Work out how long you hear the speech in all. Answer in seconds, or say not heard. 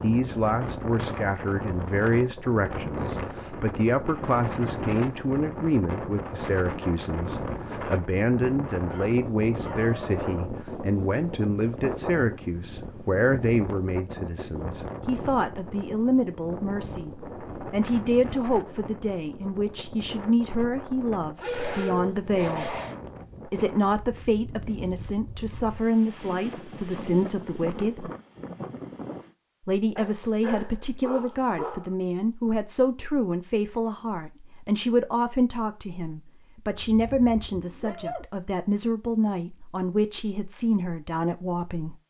40 s.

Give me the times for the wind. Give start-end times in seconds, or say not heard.
0.0-29.4.